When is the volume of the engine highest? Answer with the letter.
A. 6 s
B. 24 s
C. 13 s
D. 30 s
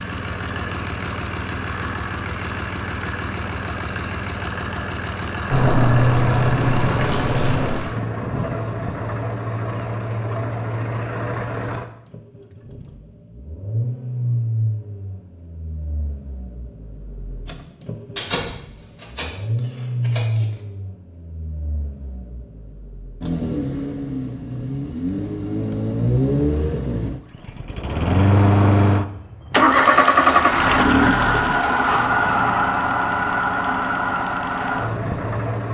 D.